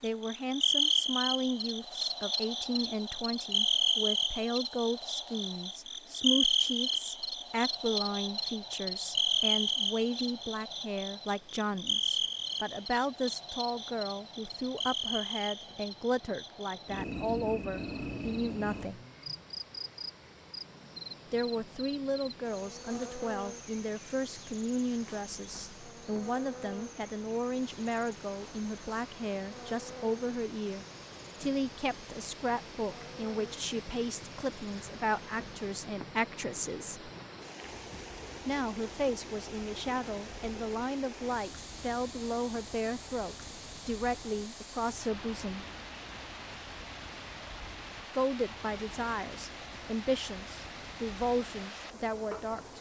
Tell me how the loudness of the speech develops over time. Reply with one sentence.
The volume of the speech stays about the same.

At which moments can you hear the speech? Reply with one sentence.
You can hear the speech from 0.0 to 19.0 s, from 21.3 to 37.1 s, from 38.5 to 45.6 s and from 48.1 to 52.7 s.